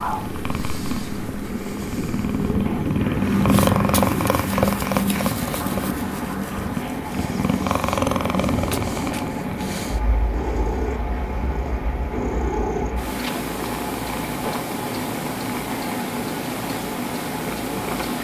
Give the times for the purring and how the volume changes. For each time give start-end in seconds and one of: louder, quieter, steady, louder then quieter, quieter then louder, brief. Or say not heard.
0.0-18.1 quieter.